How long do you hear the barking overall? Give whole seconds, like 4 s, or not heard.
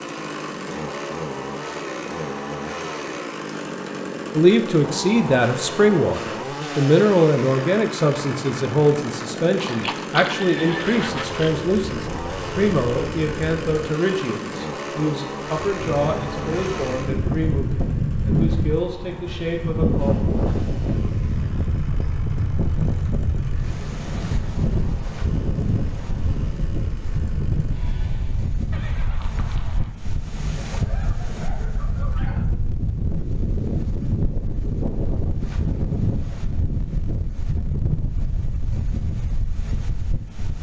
2 s.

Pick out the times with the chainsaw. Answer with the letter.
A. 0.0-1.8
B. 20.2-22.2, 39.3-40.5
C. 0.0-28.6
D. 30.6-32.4
C.